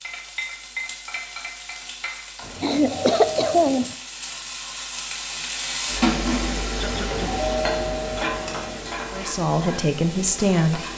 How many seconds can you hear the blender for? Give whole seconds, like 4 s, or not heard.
not heard.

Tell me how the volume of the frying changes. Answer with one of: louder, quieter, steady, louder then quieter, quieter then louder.
louder then quieter.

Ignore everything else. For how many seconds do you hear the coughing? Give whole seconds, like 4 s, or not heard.
2 s.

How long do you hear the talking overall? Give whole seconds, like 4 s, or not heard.
2 s.